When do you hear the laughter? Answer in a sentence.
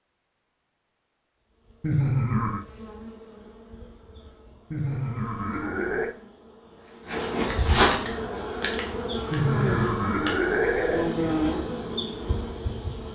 The laughter can be heard from 1.8 to 2.6 s, from 4.7 to 6.2 s and from 9.3 to 11.2 s.